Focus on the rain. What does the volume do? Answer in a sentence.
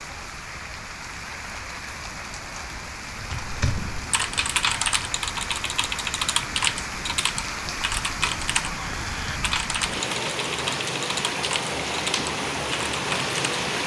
The loudness of the rain goes up.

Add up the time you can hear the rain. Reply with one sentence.
You can hear the rain for 14 seconds altogether.